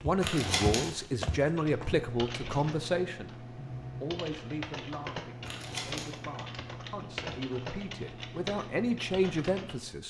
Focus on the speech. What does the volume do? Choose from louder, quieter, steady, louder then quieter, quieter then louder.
quieter then louder.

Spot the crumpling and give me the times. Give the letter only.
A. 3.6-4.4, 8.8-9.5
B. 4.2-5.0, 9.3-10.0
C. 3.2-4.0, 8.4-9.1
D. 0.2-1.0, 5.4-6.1
D.